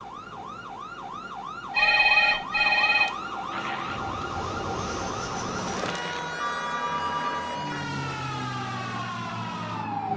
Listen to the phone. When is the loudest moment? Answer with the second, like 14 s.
2 s.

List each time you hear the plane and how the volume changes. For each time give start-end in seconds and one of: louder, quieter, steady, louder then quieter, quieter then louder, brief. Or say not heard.
3.5-10.1 steady.